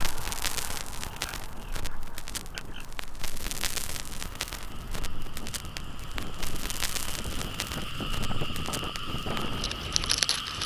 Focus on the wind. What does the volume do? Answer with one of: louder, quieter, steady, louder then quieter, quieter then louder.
louder.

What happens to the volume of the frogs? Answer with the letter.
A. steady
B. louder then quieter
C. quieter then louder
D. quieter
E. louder
C.